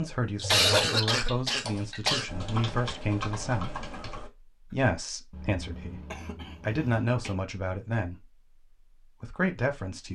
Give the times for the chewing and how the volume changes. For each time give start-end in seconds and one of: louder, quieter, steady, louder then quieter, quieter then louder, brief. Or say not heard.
not heard.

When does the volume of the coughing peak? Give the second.
1 s.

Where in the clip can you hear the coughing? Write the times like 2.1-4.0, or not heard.
0.5-2.3, 5.3-7.3.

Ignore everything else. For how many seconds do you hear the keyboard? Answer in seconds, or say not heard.
4 s.